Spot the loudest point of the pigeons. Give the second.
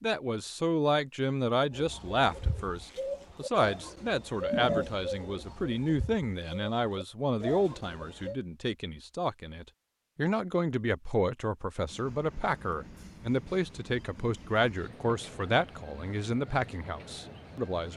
5 s.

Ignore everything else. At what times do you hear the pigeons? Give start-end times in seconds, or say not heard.
1.7-8.3.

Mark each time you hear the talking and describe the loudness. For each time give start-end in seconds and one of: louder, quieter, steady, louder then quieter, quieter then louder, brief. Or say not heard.
0.0-17.9 steady.